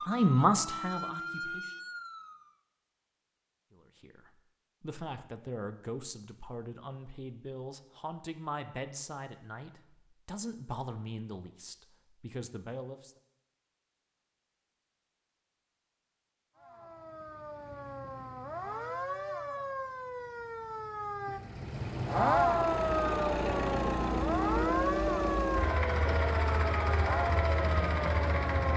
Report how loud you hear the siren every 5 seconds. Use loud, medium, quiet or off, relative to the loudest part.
medium, off, off, medium, loud, loud.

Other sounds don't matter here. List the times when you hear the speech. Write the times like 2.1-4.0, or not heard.
0.0-1.8, 3.7-13.2.